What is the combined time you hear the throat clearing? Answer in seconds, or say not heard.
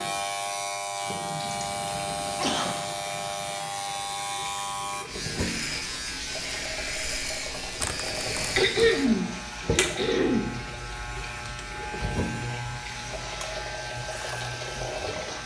3 s.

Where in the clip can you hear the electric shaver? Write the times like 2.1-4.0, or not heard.
0.0-15.4.